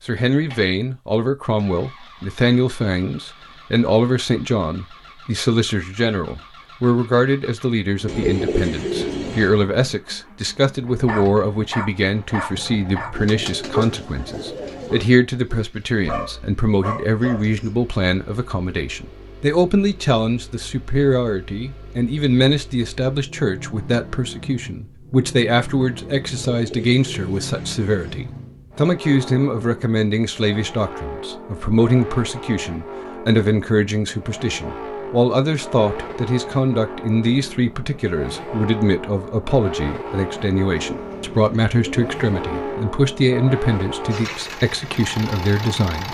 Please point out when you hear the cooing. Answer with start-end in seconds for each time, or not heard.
8.1-9.6, 13.2-15.1, 26.3-28.2, 40.8-42.8.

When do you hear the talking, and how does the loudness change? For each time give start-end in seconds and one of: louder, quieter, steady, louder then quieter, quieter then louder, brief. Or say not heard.
0.0-46.0 steady.